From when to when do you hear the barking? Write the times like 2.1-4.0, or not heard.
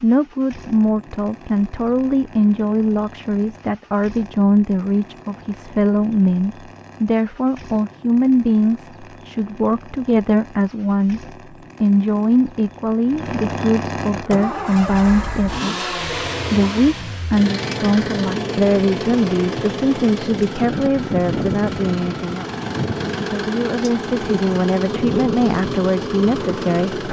not heard.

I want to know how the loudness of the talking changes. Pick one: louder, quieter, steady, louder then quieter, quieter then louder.
steady.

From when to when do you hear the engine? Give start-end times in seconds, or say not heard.
0.0-27.0.